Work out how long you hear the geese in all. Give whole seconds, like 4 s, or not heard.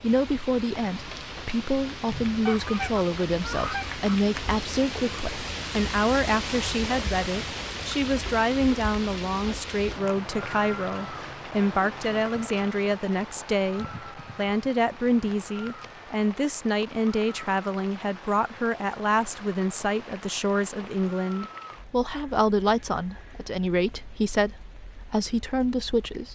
2 s.